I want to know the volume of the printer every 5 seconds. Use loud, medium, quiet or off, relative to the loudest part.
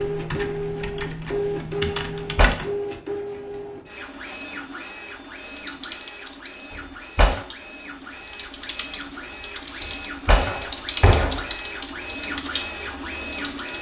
loud, medium, loud.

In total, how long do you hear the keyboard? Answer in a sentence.
The keyboard can be heard for 11 seconds in total.